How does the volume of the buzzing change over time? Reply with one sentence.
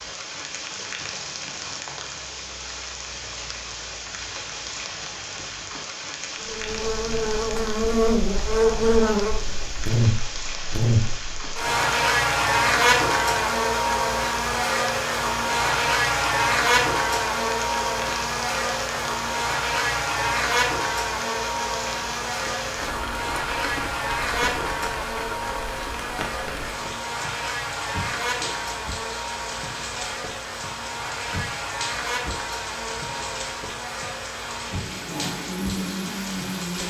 The volume of the buzzing goes down.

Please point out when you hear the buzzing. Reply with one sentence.
The buzzing can be heard from 6.4 to 36.8 s.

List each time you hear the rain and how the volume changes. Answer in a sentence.
The rain can be heard from 0.0 to 36.8 s, at a steady volume.